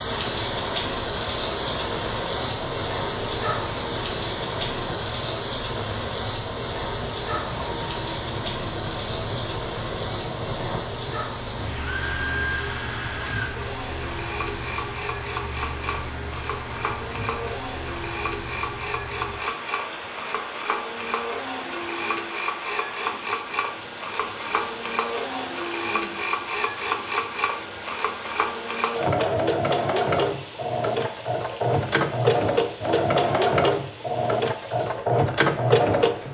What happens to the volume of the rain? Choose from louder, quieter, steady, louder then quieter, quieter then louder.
quieter.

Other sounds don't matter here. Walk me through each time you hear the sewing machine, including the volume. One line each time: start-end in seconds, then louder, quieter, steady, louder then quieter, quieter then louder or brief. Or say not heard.
0.2-36.3 louder.